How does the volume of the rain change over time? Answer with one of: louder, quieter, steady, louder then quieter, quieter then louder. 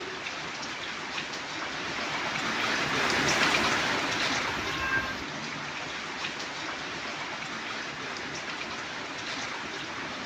louder then quieter.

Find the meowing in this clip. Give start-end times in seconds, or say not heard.
4.5-5.2.